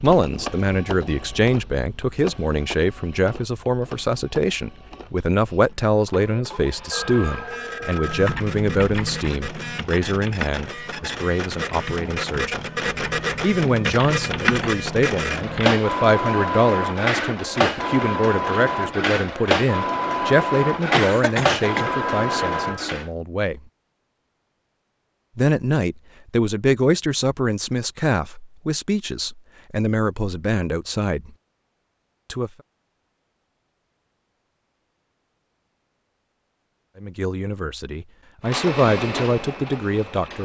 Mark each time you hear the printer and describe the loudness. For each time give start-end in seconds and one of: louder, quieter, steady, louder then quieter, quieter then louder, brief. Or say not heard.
0.0-23.1 louder
38.5-40.4 brief.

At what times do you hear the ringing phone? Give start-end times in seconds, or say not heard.
6.9-8.4, 21.8-22.9.